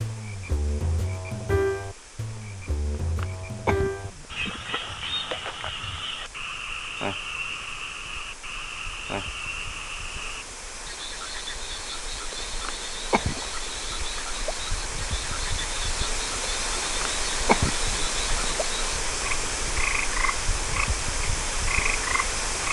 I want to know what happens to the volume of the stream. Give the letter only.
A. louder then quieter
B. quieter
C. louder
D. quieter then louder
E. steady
C.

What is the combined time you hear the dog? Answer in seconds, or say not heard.
not heard.